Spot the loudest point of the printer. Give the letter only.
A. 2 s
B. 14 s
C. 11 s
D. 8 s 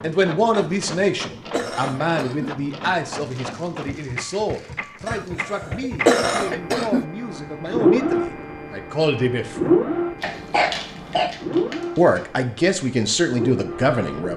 D.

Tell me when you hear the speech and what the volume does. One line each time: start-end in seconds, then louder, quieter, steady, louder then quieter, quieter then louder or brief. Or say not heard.
0.0-9.8 quieter then louder
11.9-14.3 brief.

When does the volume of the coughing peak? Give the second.
6 s.